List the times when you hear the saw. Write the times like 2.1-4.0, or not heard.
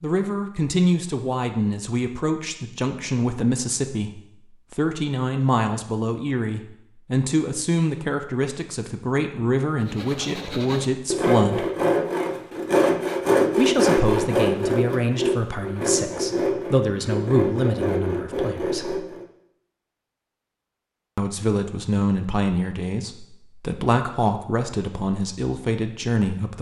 9.8-19.2.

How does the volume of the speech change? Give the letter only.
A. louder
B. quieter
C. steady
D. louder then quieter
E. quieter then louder
C.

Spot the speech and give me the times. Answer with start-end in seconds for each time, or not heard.
0.0-11.7, 13.6-19.0, 21.1-26.5.